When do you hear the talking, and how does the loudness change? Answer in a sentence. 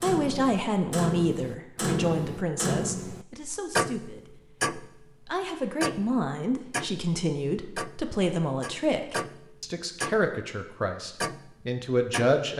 You can hear the talking from 0.0 to 12.5 s, getting quieter then louder.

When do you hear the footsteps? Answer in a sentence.
You can't hear the footsteps here.